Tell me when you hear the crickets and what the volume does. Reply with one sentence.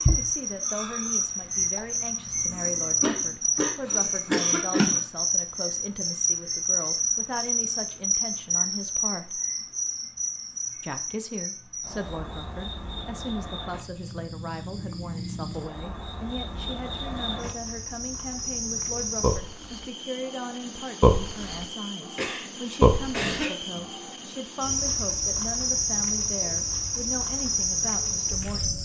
You can hear the crickets from 0.0 to 28.7 s, getting quieter then louder.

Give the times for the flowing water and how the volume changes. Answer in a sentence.
The flowing water can't be heard in this clip.